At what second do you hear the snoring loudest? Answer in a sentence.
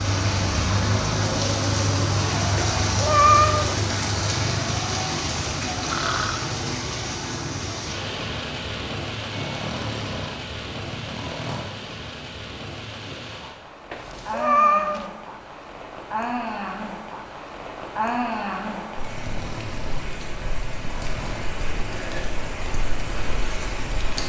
The loudest moment of the snoring is at 6 seconds.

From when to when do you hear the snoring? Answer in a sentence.
You can hear the snoring from 5.8 to 6.5 s, from 9.3 to 11.8 s and from 19.0 to 21.5 s.